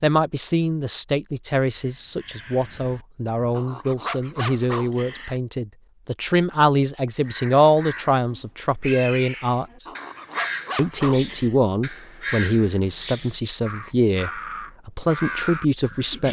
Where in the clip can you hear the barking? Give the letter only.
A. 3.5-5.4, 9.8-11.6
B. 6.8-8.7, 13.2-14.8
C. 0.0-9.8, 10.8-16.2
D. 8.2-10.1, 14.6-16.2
A.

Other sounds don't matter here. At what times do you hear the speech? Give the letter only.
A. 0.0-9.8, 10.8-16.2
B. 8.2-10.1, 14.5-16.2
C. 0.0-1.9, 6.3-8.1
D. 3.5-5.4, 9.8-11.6
A.